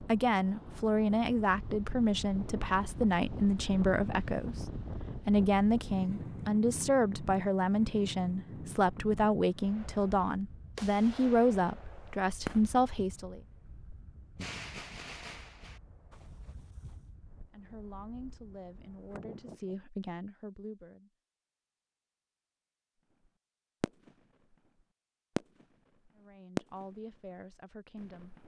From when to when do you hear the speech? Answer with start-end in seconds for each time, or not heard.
0.1-13.4, 17.4-21.1, 26.1-28.4.